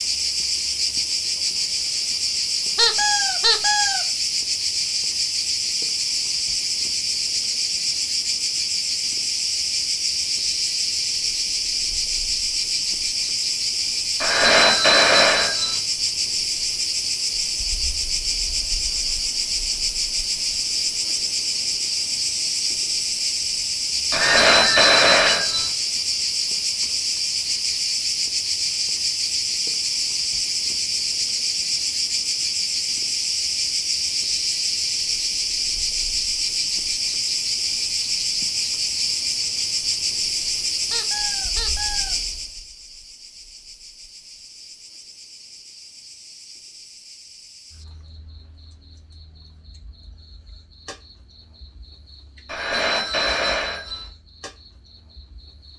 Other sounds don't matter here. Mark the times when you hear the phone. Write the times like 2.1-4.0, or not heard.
14.2-15.8, 24.1-25.7, 52.5-54.1.